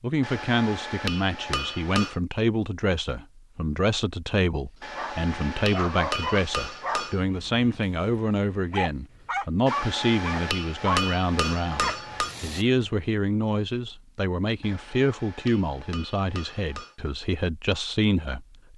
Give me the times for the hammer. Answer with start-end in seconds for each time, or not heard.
0.2-2.1, 4.8-7.2, 9.7-12.3, 14.6-16.9.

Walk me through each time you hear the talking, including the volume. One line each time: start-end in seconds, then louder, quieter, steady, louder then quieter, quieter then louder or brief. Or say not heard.
0.0-18.4 steady.